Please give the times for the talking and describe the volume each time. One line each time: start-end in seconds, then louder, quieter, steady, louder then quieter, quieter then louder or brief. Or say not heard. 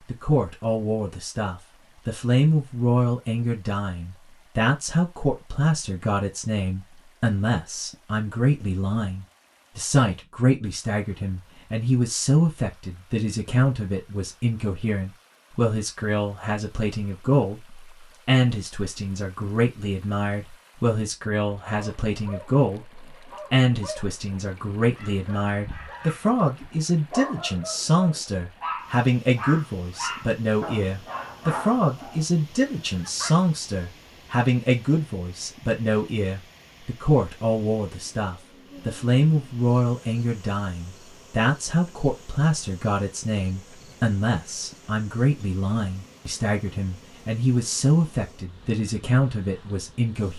0.1-50.3 steady.